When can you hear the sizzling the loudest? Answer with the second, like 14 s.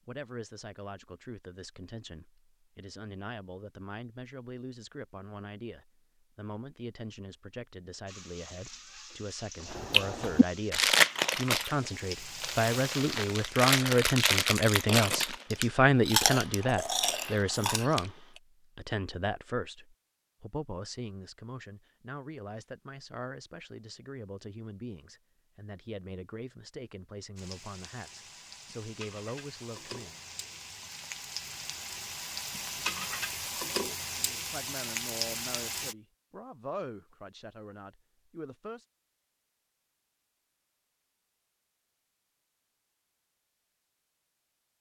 33 s.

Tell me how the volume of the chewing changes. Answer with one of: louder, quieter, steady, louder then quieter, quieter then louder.
quieter then louder.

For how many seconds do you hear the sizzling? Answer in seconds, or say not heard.
14 s.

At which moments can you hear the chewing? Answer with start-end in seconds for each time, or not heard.
9.7-18.1.